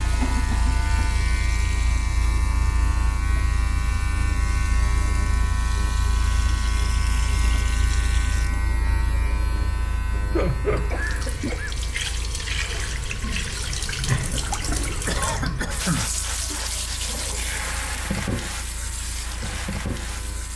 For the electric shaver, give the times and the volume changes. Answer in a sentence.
The electric shaver can be heard from 0.0 to 20.5 s, getting quieter.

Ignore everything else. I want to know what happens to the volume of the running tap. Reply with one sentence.
The volume of the running tap goes up.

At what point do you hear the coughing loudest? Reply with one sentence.
The loudest moment of the coughing is at 16 seconds.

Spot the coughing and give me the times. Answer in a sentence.
You can hear the coughing from 0.2 to 1.1 s, from 10.8 to 11.8 s and from 14.9 to 16.6 s.